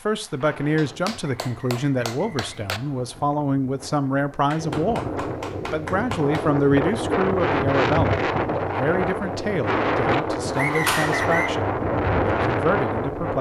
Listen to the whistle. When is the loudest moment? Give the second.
11 s.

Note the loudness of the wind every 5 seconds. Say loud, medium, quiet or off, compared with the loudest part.
quiet, loud, loud.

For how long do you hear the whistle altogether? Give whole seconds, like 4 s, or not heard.
3 s.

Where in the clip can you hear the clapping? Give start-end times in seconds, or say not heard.
0.8-2.8, 4.5-6.5, 10.8-11.3.